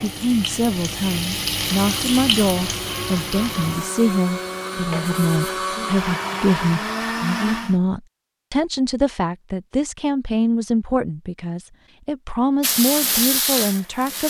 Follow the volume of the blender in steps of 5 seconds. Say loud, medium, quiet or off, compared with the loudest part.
medium, loud, off.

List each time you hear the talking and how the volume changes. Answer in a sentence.
The talking can be heard from 0.0 to 14.2 s, at a steady volume.